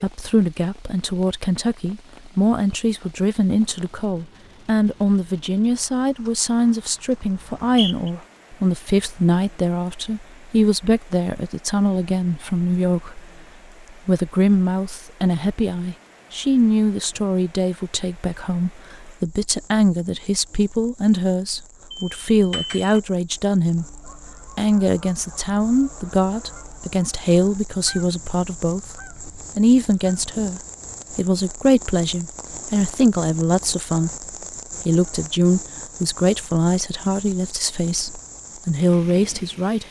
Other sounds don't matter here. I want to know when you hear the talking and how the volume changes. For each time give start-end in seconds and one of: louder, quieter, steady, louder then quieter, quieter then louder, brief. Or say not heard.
0.0-13.2 steady
14.1-39.8 steady.